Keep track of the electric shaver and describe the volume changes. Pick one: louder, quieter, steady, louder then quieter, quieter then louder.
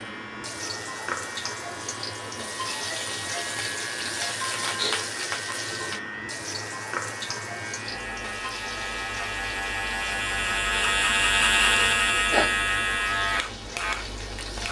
louder.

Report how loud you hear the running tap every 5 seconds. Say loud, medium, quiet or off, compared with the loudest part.
loud, loud, medium.